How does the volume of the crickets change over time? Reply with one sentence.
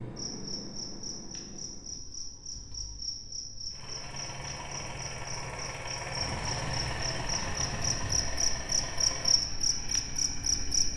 The loudness of the crickets goes up.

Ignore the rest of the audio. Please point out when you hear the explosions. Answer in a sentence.
You can hear the explosions from 6.2 to 8.2 s.